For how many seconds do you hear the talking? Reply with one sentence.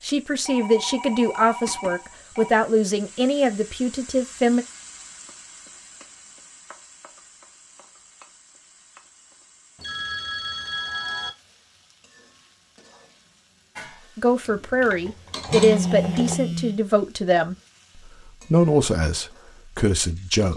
You can hear the talking for 11 seconds altogether.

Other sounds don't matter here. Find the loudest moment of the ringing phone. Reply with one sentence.
The loudest moment of the ringing phone is at 16 seconds.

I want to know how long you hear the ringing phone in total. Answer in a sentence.
You can hear the ringing phone for 5 seconds altogether.